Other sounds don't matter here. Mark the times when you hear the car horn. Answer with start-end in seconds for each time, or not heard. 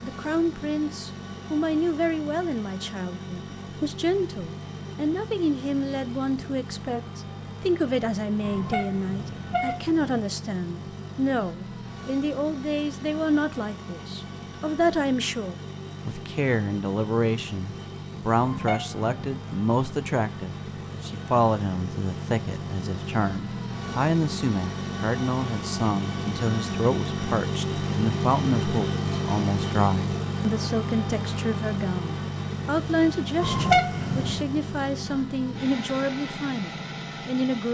8.4-10.2, 18.4-19.2, 33.4-34.5.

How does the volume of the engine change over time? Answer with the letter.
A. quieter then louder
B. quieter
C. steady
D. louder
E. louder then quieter
D.